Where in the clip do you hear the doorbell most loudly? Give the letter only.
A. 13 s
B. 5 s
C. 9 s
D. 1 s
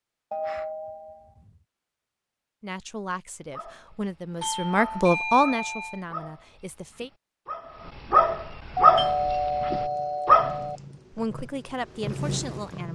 C.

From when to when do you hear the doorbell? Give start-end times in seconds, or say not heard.
0.3-1.6, 4.4-6.0, 8.8-10.8.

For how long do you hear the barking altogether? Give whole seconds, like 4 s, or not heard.
7 s.